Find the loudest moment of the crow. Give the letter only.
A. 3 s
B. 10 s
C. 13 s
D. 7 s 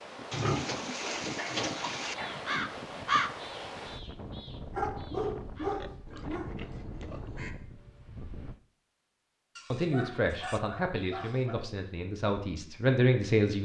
A.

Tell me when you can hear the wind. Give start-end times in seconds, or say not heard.
0.0-8.6.